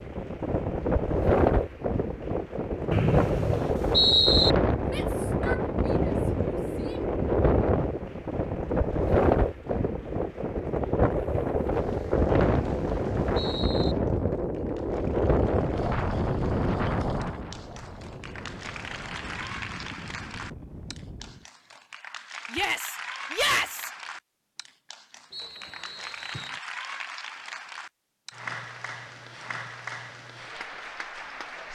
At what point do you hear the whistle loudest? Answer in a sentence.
The volume of the whistle peaks at 4 seconds.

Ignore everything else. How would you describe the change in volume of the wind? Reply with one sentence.
The loudness of the wind goes down.